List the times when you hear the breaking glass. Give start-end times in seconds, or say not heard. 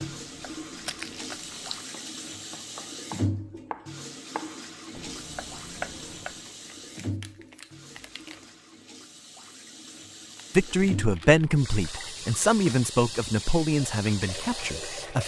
not heard.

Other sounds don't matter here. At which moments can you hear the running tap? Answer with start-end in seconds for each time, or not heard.
0.0-15.2.